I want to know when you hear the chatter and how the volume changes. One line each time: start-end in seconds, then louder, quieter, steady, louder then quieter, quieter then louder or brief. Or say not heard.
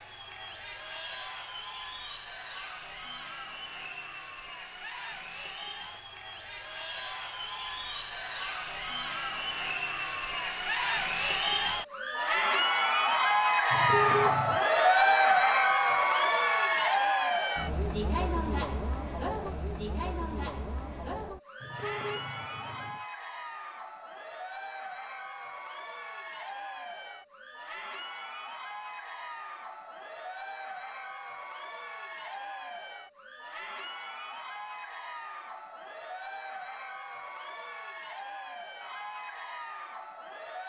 0.0-40.6 louder then quieter.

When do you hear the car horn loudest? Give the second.
14 s.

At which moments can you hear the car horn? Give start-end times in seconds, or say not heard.
13.7-14.7, 21.6-23.1.